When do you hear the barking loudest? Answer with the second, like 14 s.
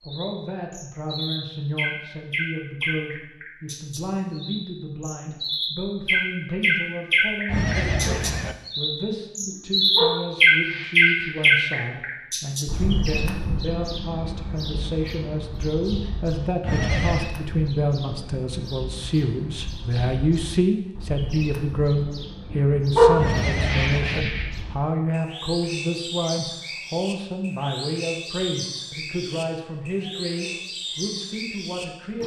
23 s.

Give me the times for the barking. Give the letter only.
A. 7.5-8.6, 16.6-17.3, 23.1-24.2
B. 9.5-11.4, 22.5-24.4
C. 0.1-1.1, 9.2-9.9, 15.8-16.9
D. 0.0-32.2
B.